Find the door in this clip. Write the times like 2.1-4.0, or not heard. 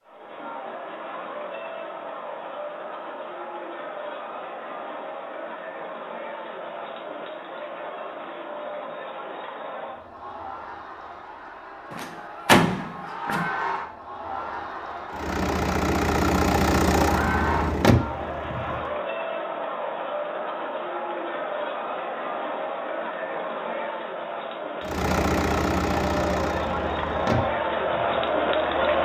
11.9-13.4.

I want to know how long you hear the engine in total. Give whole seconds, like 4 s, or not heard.
8 s.